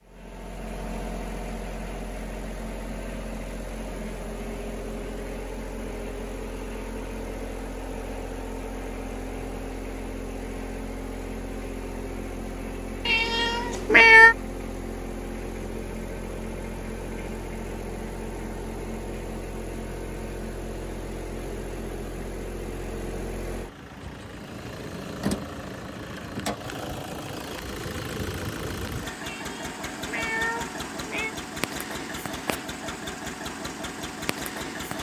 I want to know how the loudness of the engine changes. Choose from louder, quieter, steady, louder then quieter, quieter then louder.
steady.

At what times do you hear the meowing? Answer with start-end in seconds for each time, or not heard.
13.1-14.3, 29.2-31.4.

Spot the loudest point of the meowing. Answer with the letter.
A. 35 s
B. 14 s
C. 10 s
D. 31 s
B.